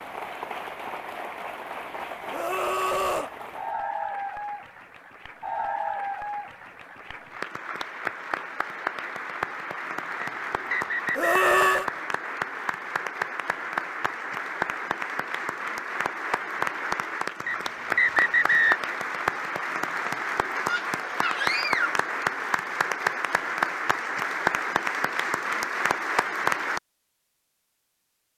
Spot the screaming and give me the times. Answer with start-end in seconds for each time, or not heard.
2.3-3.3, 11.2-11.8, 20.6-22.0.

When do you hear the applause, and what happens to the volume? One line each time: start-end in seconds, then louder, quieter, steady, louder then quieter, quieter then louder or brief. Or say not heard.
0.0-26.8 louder.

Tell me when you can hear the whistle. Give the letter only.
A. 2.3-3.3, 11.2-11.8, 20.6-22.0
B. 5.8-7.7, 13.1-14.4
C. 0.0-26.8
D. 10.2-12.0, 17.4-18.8
D.